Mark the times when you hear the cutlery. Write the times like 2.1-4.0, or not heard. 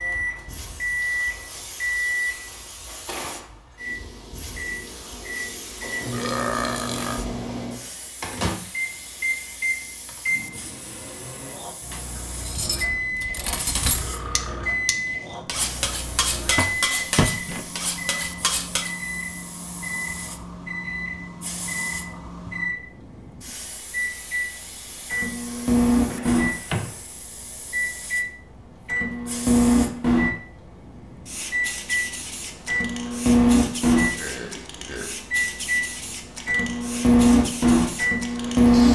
12.3-18.9.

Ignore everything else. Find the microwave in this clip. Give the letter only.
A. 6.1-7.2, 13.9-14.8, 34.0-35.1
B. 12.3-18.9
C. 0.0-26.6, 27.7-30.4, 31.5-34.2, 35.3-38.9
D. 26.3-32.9
C.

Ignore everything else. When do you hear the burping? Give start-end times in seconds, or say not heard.
6.1-7.2, 13.9-14.8, 34.0-35.1.